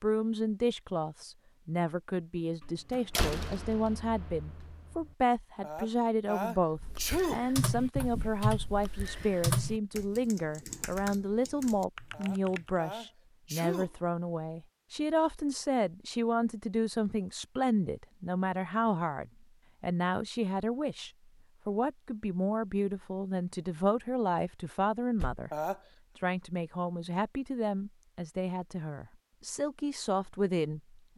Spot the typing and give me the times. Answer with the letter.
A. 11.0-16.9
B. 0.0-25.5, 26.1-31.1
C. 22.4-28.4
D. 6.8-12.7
D.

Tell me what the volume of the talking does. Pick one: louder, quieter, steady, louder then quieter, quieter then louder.
steady.